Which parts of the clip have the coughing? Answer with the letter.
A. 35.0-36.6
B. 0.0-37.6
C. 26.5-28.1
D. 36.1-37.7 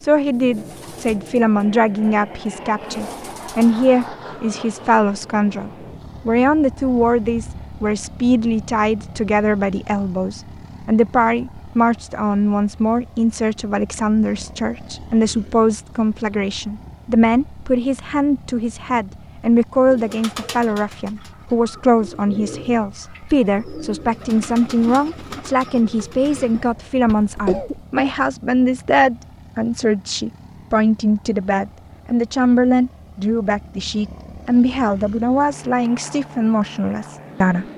C.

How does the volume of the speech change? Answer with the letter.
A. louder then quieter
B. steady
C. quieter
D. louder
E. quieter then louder
B.